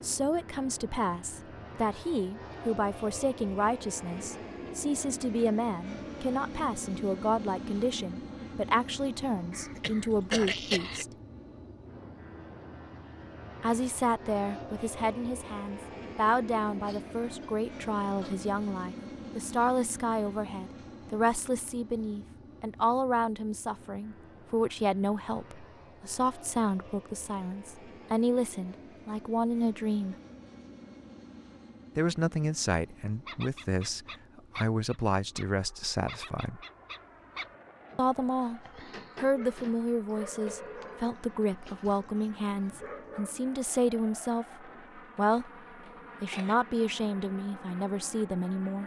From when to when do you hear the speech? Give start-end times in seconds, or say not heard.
0.0-11.1, 13.6-30.1, 31.9-36.6, 38.0-45.5, 46.2-48.8.